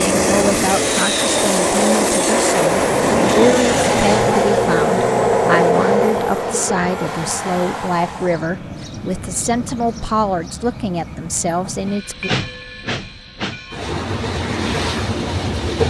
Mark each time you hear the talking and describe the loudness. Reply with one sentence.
The talking can be heard from 0.0 to 12.3 s, at a steady volume.